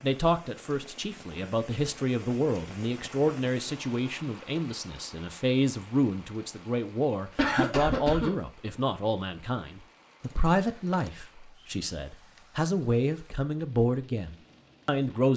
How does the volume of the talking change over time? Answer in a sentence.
The loudness of the talking stays about the same.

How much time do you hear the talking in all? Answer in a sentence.
You can hear the talking for 15 seconds altogether.